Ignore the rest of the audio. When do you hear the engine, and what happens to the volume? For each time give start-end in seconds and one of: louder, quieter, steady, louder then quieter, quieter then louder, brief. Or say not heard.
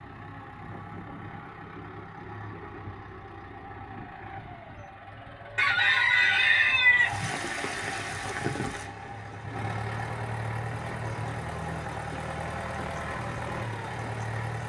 0.0-14.6 louder.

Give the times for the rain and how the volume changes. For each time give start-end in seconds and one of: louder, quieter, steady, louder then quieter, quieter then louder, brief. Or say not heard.
7.0-14.6 quieter.